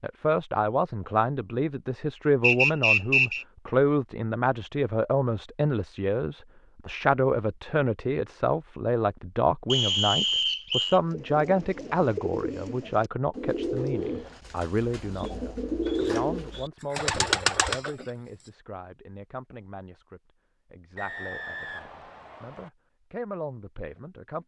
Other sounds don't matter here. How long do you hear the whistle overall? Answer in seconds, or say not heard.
4 s.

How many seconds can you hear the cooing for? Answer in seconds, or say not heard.
7 s.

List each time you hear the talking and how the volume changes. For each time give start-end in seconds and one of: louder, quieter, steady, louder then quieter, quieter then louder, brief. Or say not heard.
0.0-24.4 quieter.